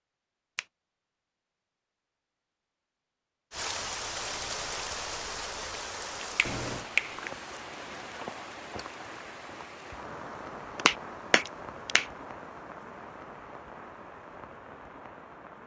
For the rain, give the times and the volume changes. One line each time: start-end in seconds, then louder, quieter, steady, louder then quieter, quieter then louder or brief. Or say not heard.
3.5-15.6 quieter.